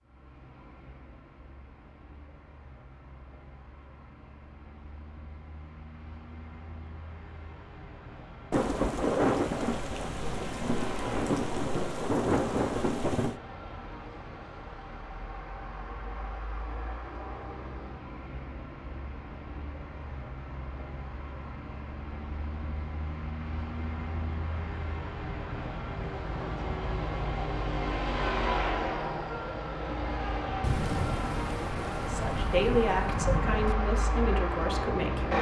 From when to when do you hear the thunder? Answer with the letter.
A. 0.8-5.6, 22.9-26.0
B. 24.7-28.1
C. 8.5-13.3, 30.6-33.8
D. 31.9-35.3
C.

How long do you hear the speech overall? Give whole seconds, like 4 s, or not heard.
3 s.